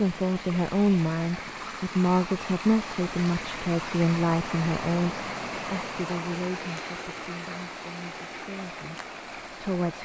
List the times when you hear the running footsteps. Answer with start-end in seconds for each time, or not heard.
not heard.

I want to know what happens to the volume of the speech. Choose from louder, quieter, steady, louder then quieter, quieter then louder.
quieter.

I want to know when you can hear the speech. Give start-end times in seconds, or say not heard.
0.0-9.9.